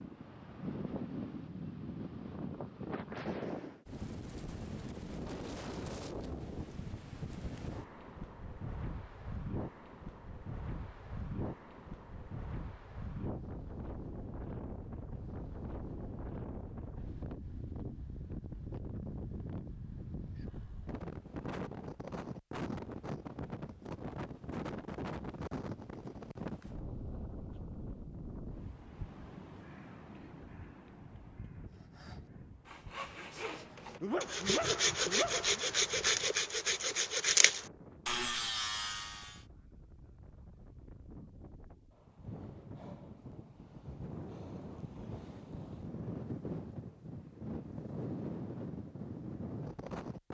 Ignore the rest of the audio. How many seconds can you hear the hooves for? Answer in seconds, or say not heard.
not heard.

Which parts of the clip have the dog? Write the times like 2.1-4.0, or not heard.
33.3-35.6.